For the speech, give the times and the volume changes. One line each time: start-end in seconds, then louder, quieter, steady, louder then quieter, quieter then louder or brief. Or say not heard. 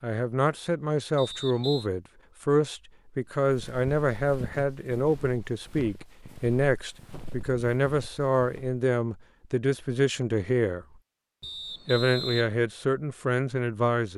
0.0-10.8 steady
11.8-14.1 brief.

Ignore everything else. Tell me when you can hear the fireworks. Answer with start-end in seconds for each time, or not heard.
not heard.